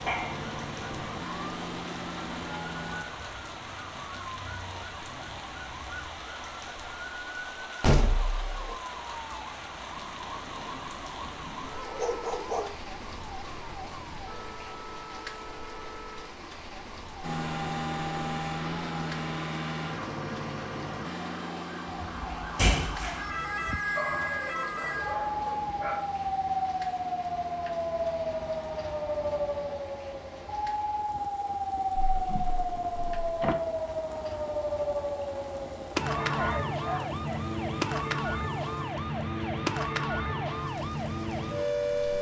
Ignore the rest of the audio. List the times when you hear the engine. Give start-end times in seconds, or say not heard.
0.0-3.0, 17.2-29.8.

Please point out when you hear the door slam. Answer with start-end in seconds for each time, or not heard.
7.8-8.8, 22.0-23.8, 31.9-33.5.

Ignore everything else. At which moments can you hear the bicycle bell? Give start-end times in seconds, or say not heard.
not heard.